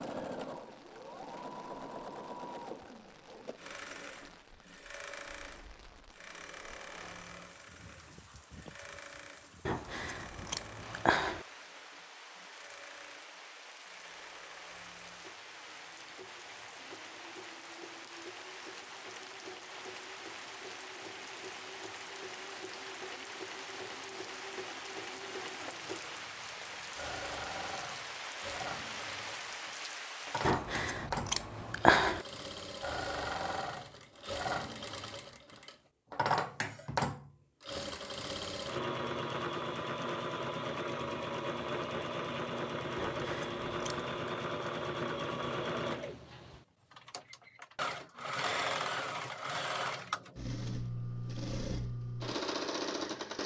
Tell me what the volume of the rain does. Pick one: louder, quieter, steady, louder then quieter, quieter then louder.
louder.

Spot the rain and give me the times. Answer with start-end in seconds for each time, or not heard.
0.0-30.6.